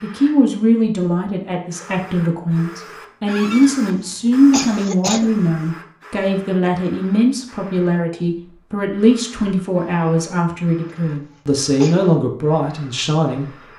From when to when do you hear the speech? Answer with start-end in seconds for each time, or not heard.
0.0-13.7.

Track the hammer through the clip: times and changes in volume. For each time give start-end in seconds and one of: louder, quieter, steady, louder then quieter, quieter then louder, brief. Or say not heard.
not heard.